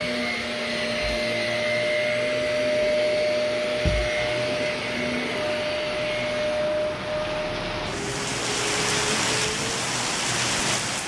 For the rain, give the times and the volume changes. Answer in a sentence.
You can hear the rain from 4.2 to 11.0 s, getting louder.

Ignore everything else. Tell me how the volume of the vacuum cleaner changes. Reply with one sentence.
The volume of the vacuum cleaner goes down.